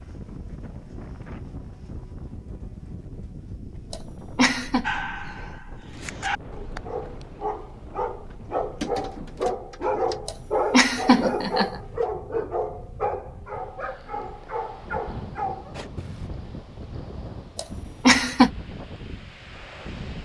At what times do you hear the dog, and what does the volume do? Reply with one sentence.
You can hear the dog from 4.8 to 16.3 s, getting louder then quieter.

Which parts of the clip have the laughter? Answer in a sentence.
You can hear the laughter from 3.9 to 4.8 s, from 10.2 to 11.8 s and from 17.6 to 18.5 s.